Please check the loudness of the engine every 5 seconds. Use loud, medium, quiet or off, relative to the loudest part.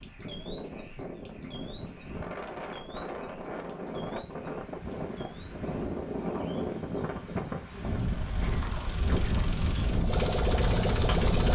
off, quiet, loud.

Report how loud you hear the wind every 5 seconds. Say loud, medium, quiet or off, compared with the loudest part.
medium, loud, loud.